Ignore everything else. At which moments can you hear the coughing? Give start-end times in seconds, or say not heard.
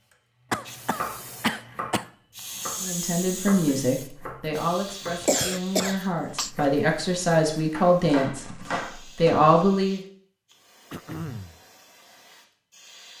0.5-2.0, 5.2-6.5, 10.9-11.6.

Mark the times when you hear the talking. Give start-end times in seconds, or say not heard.
2.8-10.0.